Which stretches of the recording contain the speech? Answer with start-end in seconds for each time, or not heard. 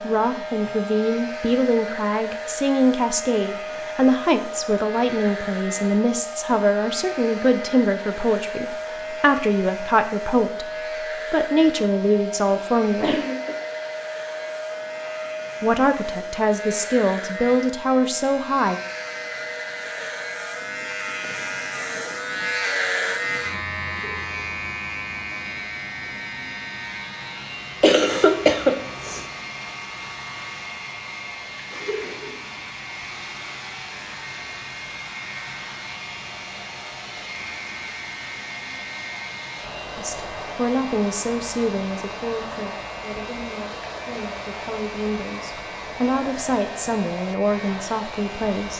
0.0-13.2, 15.6-18.8, 40.0-48.7.